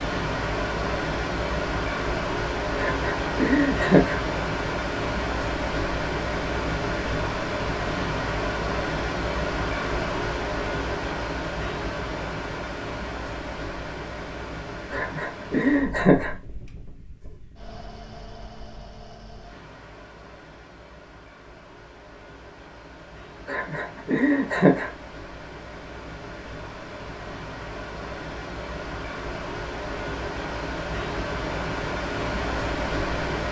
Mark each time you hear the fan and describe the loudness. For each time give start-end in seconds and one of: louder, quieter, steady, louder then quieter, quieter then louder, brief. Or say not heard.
0.0-33.4 quieter then louder.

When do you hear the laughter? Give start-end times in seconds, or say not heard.
2.8-4.2, 14.9-16.4, 23.4-24.9.